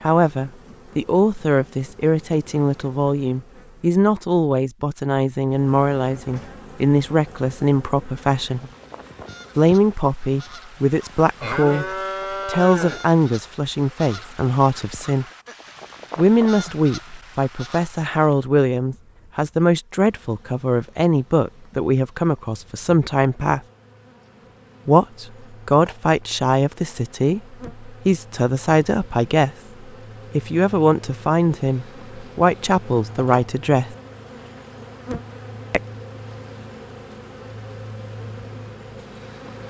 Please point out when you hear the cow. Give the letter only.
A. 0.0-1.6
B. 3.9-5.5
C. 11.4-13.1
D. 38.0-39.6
C.